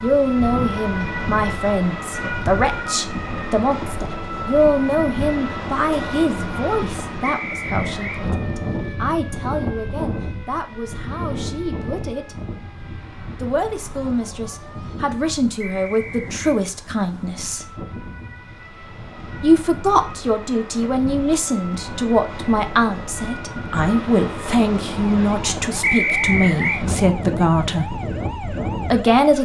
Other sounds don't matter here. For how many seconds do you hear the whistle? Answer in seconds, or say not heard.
3 s.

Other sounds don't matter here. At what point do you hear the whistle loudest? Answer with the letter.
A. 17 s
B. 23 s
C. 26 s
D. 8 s
C.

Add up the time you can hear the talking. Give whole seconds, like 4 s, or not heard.
26 s.